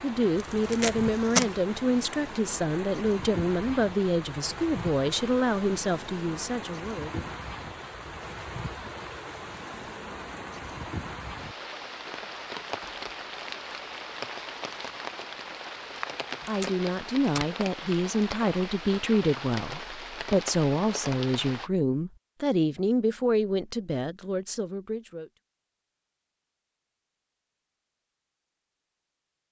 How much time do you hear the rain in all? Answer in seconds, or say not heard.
22 s.